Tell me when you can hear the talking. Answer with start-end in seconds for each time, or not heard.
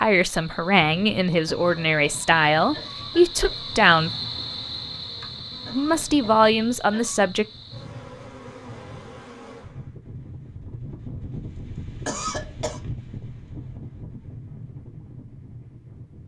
0.0-4.1, 5.7-7.5.